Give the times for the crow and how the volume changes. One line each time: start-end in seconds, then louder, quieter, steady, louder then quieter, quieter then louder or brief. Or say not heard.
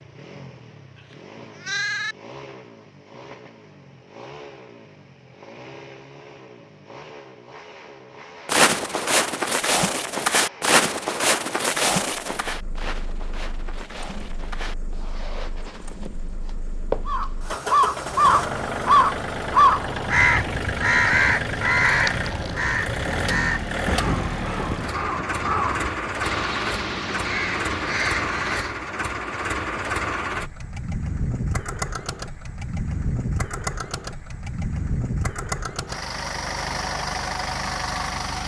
17.1-28.8 quieter.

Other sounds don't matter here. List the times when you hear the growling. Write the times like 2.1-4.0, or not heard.
not heard.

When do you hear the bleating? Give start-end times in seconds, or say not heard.
0.9-2.1.